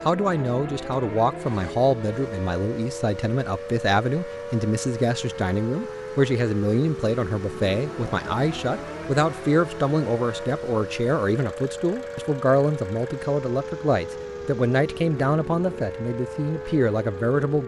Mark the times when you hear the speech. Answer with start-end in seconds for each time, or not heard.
0.1-17.6.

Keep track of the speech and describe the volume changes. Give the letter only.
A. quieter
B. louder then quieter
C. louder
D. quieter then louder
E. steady
E.